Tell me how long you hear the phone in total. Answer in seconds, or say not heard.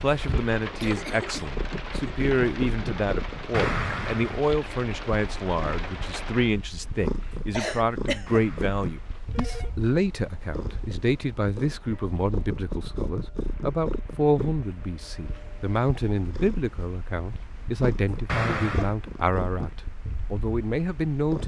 3 s.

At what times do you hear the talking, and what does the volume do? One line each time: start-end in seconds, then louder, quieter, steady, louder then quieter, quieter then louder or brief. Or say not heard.
0.0-21.4 steady.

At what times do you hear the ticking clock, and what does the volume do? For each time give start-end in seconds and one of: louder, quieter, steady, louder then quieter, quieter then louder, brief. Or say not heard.
not heard.